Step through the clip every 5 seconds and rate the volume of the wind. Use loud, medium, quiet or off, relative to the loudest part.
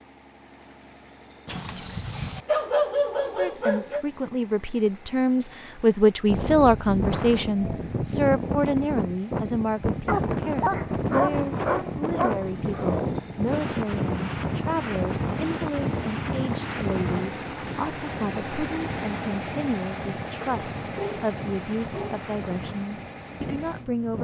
off, loud, loud, loud, medium.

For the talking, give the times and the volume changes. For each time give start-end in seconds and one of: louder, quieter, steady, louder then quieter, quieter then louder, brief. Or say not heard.
3.2-24.1 quieter.